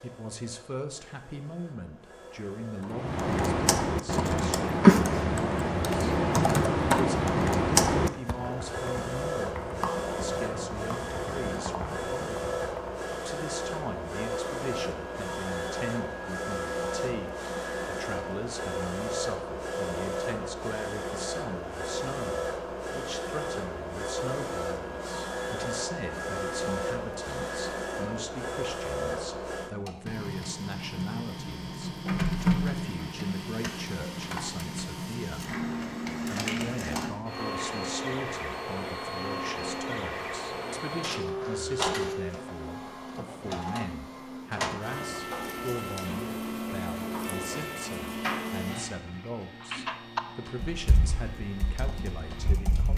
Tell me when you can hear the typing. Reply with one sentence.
The typing can be heard from 2.9 to 13.1 s and from 49.6 to 52.9 s.